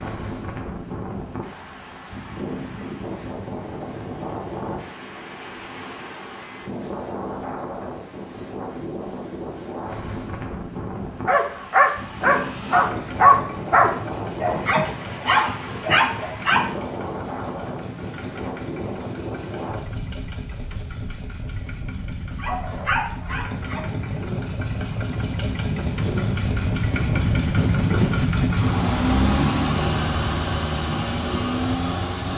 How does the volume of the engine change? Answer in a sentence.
The volume of the engine goes up.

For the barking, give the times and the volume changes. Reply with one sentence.
The barking can be heard from 11.2 to 16.9 s, getting quieter; and briefly from 22.4 to 24.1 s.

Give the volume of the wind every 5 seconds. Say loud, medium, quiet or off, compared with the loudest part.
medium, medium, medium, medium, medium, loud, medium.